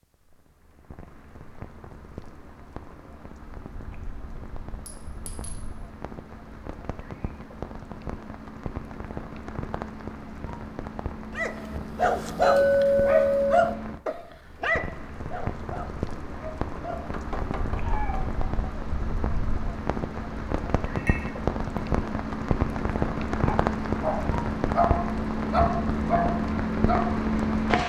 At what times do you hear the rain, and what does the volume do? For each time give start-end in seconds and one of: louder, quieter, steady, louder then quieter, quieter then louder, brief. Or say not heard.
0.0-27.8 louder.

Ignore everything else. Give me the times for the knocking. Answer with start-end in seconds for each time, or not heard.
16.9-18.1.